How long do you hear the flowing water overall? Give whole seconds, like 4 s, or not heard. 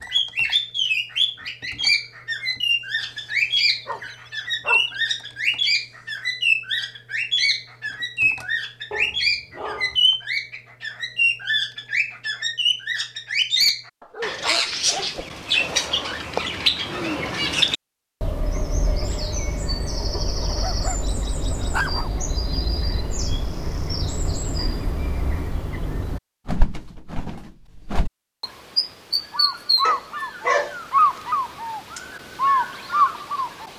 not heard.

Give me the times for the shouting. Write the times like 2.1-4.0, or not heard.
not heard.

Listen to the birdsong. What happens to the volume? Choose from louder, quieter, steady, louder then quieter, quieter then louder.
quieter then louder.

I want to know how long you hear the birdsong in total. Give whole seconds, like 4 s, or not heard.
34 s.